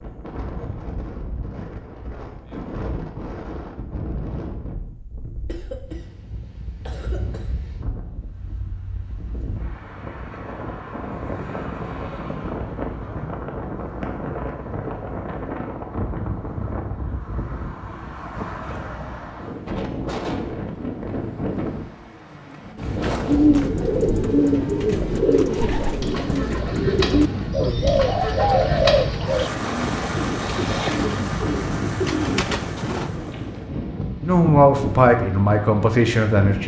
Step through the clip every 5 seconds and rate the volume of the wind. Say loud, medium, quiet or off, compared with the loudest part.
medium, medium, loud, loud, loud, loud, loud, loud.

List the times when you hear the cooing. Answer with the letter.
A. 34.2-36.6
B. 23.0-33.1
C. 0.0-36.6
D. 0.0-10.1
B.